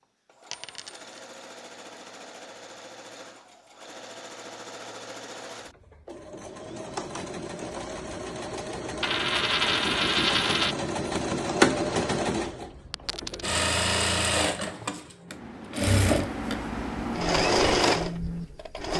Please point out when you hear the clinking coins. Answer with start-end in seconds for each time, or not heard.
0.5-1.3, 9.0-10.8, 12.9-13.6.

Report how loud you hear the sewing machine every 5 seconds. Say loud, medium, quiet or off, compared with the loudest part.
quiet, medium, loud, loud.